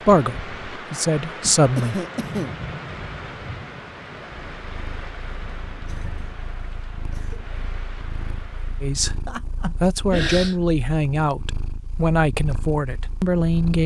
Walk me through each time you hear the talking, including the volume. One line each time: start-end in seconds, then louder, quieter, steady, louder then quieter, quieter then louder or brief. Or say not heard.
0.1-2.0 brief
8.8-13.8 steady.